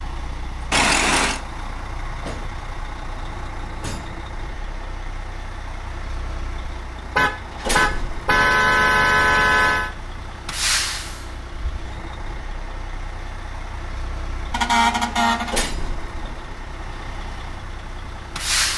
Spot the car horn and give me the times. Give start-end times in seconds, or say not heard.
0.7-1.4, 7.2-9.9, 14.5-15.6.